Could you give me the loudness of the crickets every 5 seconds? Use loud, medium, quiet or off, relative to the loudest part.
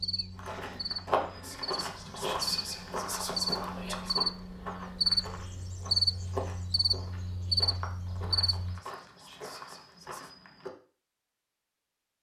medium, loud, off.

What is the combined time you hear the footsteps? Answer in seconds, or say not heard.
10 s.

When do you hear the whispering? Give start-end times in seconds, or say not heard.
1.4-4.2, 8.4-10.3.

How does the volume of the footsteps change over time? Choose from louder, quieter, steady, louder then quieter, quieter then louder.
quieter.